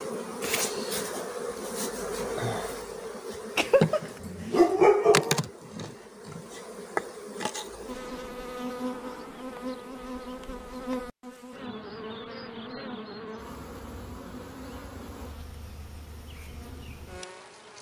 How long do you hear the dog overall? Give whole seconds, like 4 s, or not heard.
2 s.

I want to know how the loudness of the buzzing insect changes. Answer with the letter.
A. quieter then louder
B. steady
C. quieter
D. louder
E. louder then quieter
C.